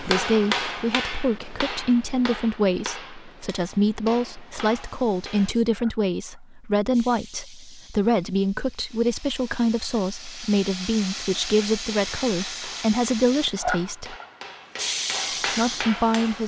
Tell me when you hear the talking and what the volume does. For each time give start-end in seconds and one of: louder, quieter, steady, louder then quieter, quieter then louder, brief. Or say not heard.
0.0-14.2 steady
15.6-16.4 brief.